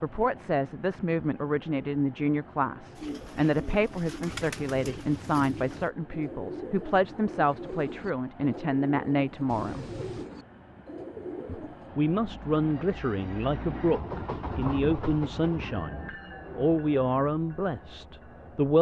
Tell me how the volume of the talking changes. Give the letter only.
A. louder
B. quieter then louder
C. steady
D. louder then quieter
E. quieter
C.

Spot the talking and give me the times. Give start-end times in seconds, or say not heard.
0.0-9.8, 11.4-18.7.